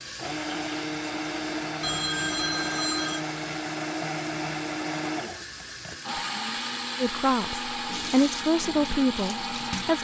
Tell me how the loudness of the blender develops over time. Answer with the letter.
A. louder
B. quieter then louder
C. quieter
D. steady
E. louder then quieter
D.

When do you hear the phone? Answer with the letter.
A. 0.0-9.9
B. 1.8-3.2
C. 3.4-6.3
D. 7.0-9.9
B.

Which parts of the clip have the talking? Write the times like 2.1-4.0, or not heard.
7.0-9.9.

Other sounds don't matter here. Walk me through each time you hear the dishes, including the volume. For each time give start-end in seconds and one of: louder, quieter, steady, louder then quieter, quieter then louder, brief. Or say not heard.
not heard.